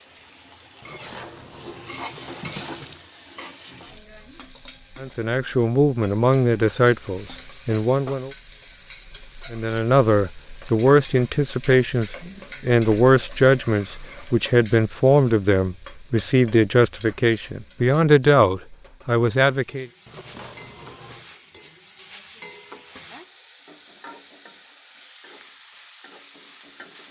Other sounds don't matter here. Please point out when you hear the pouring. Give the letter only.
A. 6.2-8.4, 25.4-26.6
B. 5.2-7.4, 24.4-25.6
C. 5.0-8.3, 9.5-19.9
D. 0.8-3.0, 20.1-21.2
D.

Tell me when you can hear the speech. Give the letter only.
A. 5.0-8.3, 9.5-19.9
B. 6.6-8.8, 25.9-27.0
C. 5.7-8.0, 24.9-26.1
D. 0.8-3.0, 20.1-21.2
A.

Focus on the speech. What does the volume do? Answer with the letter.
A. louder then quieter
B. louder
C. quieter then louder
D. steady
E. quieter
D.